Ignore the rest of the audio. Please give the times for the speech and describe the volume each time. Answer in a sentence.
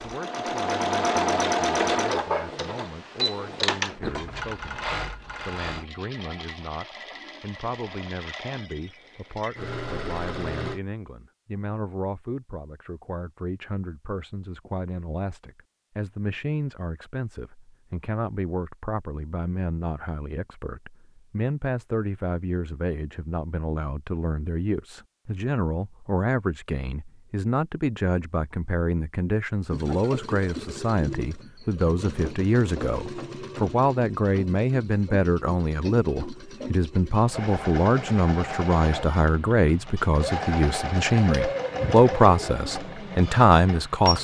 You can hear the speech from 0.0 to 44.1 s, getting louder.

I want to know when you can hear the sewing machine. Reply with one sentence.
You can hear the sewing machine from 0.0 to 10.8 s and from 29.7 to 44.1 s.